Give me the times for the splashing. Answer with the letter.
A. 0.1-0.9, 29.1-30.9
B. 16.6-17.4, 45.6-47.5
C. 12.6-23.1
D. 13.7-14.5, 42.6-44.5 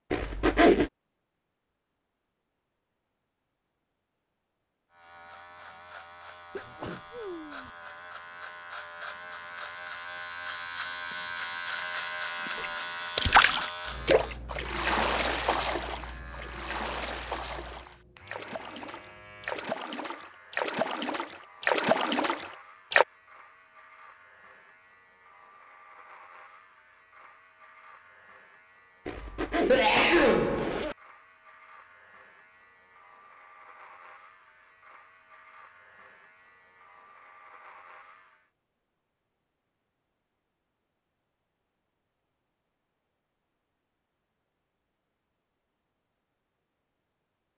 C.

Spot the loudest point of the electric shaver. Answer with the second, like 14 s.
12 s.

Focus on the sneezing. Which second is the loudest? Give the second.
30 s.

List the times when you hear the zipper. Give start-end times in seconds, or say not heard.
0.1-0.9, 29.1-30.9.